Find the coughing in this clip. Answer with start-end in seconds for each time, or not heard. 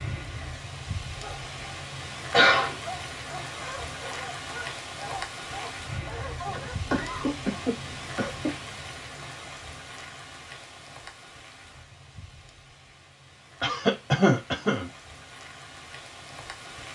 2.3-2.8, 6.5-8.5, 13.6-14.8.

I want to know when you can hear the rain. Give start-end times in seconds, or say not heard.
0.0-16.8.